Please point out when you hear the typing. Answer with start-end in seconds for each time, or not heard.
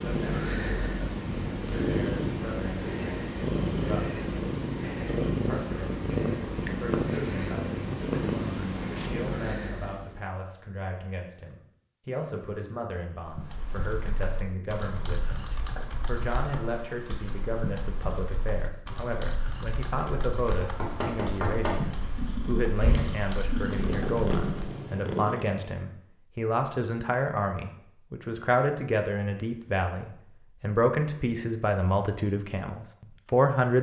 13.2-24.8.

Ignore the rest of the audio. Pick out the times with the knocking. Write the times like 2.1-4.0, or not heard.
20.6-22.1.